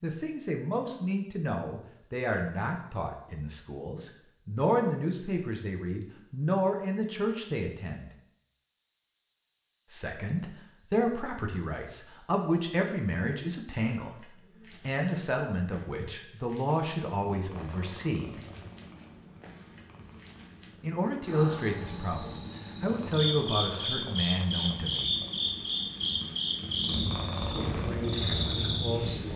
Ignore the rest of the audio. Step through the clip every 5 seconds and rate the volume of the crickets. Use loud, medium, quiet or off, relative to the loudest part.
quiet, quiet, medium, quiet, loud, loud.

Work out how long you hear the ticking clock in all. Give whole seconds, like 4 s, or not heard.
not heard.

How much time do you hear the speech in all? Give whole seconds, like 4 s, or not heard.
22 s.